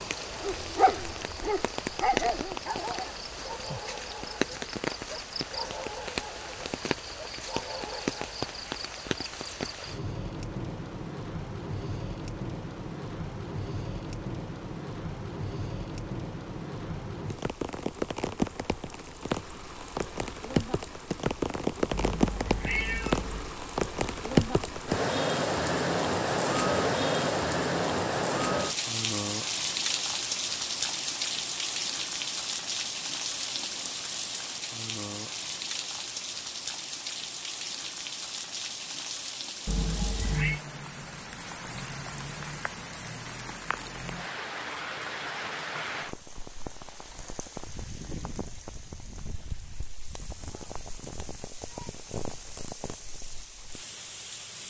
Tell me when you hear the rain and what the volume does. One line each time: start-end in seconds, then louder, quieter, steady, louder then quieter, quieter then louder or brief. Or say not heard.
0.0-54.6 louder then quieter.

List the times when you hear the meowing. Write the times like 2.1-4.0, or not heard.
21.9-23.6, 39.6-40.6.